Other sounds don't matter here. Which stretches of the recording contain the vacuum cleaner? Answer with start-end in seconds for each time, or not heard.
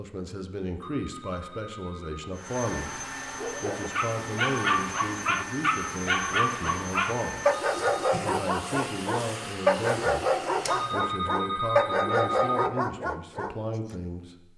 2.3-11.1.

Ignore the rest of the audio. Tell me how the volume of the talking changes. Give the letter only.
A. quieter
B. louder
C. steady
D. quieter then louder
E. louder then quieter
C.